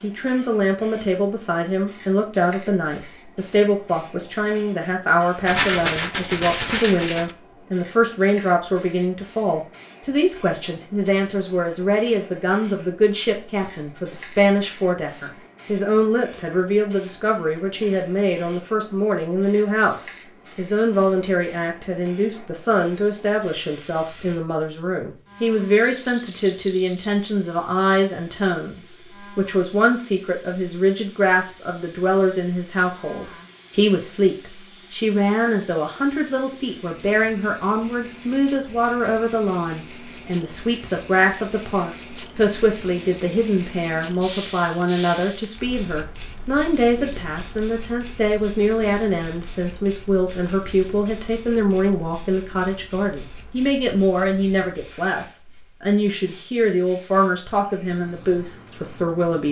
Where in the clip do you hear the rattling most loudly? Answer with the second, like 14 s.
6 s.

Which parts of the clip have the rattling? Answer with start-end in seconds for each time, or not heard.
5.5-7.3, 25.8-27.1, 44.5-45.5.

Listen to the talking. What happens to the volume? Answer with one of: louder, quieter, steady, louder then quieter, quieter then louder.
steady.